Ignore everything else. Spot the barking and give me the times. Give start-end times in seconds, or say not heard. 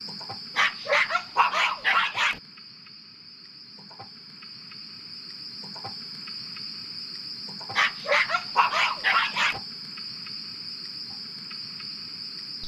0.6-2.4, 7.8-9.6.